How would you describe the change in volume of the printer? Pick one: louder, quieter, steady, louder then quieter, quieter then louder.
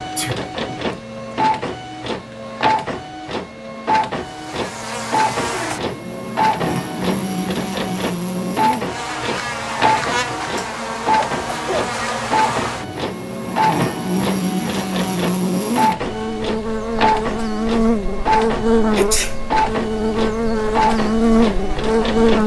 steady.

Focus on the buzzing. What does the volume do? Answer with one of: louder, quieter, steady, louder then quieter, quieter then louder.
louder.